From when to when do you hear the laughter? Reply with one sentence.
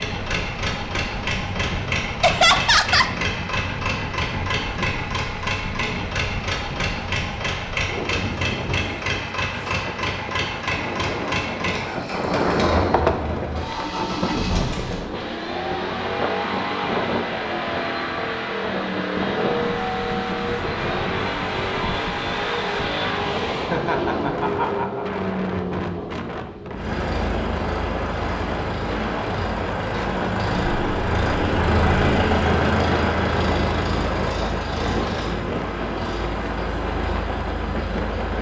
The laughter can be heard from 2.2 to 3.1 s and from 23.7 to 25.2 s.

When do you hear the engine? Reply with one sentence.
You can hear the engine from 0.0 to 38.3 s.